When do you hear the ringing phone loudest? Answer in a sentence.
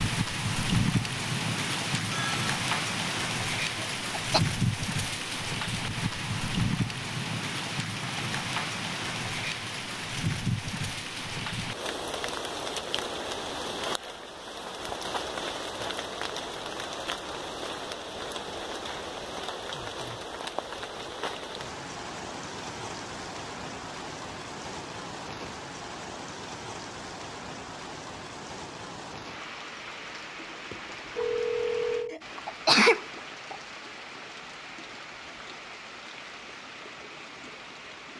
The volume of the ringing phone peaks at 32 seconds.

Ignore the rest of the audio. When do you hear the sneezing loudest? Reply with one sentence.
The loudest moment of the sneezing is at 33 seconds.